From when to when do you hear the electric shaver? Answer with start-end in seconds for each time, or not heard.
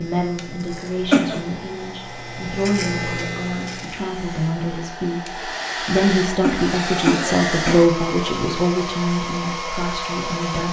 0.0-4.5.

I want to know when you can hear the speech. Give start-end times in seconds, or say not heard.
0.0-10.6.